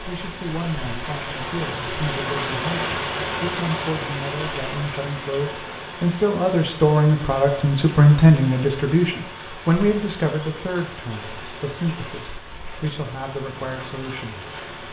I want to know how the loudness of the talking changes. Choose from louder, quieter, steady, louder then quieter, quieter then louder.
louder then quieter.